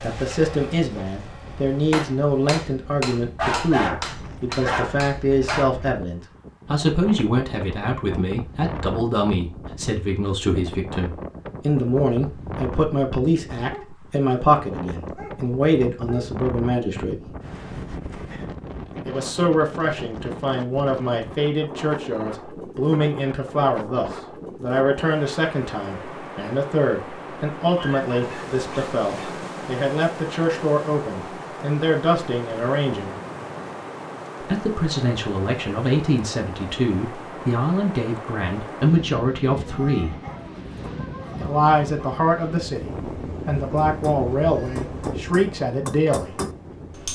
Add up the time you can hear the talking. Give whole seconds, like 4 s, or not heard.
42 s.